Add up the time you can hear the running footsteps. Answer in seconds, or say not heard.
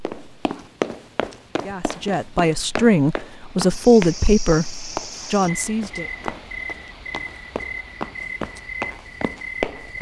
10 s.